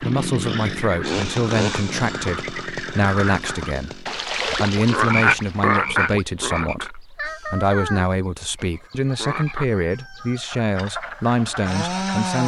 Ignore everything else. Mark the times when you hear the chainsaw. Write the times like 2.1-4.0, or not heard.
0.0-4.1, 10.8-12.4.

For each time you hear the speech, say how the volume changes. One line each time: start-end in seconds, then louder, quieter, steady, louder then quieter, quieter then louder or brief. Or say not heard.
0.0-12.4 steady.